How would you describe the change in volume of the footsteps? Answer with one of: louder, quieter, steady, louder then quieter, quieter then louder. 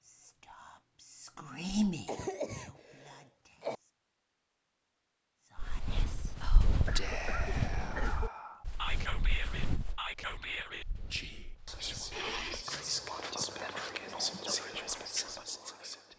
quieter then louder.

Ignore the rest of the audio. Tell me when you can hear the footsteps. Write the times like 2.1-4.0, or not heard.
5.5-14.2.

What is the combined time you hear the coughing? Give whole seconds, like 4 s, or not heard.
4 s.